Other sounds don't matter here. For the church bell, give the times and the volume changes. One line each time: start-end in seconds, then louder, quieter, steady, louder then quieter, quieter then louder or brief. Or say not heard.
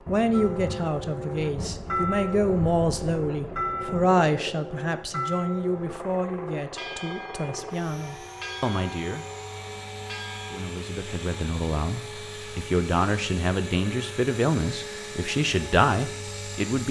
0.3-10.6 quieter.